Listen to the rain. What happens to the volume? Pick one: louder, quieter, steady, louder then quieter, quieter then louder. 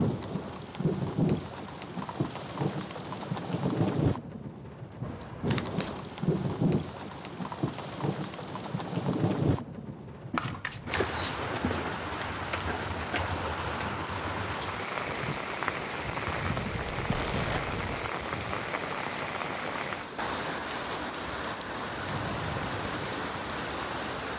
steady.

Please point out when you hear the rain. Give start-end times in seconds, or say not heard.
0.0-24.3.